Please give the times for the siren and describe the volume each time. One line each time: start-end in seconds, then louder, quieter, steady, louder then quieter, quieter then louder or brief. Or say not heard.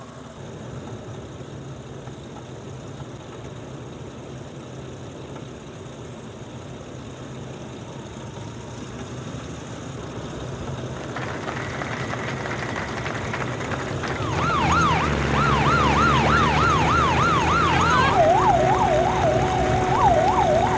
14.2-20.7 steady.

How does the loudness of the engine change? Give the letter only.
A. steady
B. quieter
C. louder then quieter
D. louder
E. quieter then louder
D.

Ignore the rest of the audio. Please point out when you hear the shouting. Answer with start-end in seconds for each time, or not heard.
17.6-18.1.